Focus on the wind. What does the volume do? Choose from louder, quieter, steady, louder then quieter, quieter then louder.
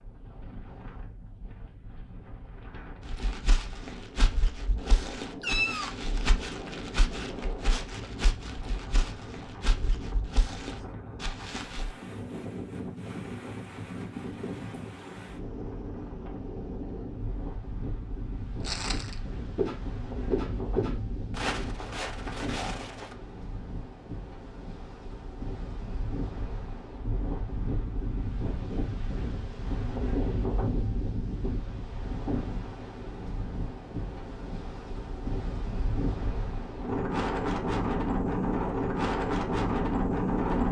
louder.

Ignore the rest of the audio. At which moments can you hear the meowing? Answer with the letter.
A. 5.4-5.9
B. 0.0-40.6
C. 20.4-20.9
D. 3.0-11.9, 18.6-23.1
A.